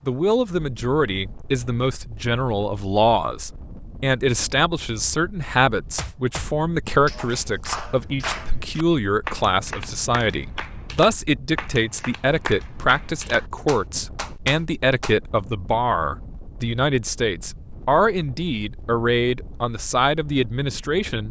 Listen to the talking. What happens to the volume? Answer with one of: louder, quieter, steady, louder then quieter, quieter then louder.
steady.